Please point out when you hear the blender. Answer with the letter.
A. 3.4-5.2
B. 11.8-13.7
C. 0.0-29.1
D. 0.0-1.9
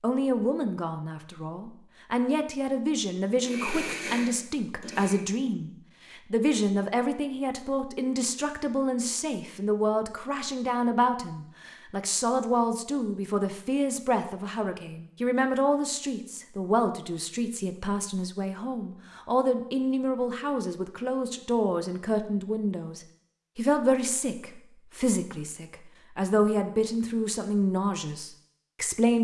A.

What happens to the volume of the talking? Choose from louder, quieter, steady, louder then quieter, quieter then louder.
steady.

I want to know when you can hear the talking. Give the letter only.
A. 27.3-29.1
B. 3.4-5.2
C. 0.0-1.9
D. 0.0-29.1
D.